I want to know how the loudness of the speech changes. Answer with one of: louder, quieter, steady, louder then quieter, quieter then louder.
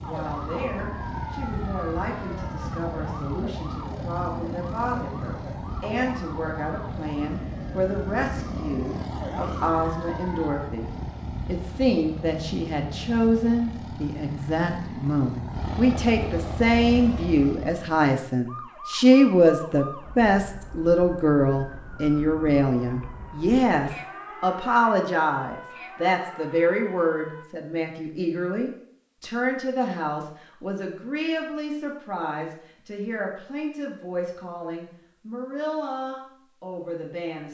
louder then quieter.